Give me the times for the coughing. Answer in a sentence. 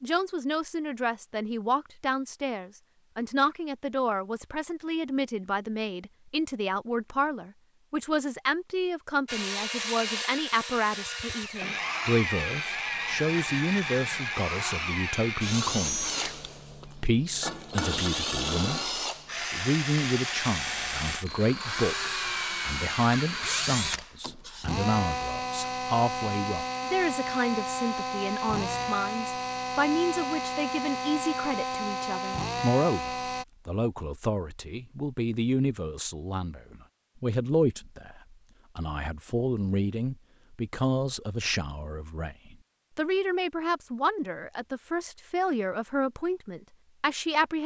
The coughing can't be heard in this clip.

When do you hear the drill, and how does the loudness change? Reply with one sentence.
The drill can be heard from 9.2 to 33.5 s, at a steady volume.